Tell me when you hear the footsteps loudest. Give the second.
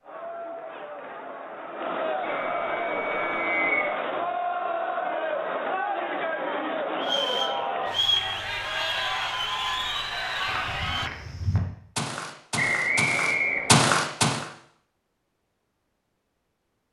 14 s.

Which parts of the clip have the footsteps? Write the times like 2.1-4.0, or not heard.
10.4-14.4.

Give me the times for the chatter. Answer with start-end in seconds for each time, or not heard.
0.0-11.1.